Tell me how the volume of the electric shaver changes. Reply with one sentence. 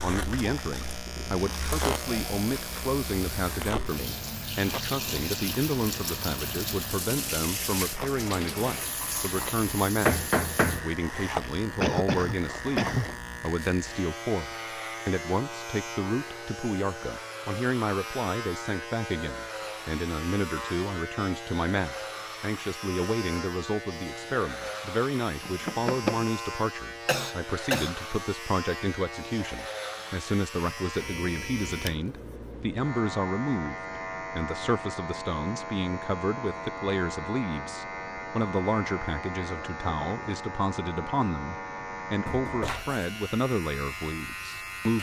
The loudness of the electric shaver stays about the same.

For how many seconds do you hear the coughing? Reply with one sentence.
The coughing can be heard for 2 seconds in total.